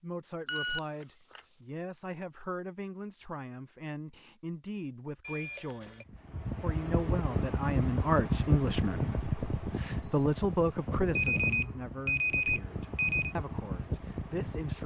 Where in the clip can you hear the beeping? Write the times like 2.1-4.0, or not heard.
0.5-1.4, 5.2-6.0, 11.2-13.3.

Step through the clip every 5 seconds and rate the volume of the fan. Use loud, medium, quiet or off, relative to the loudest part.
off, loud, medium.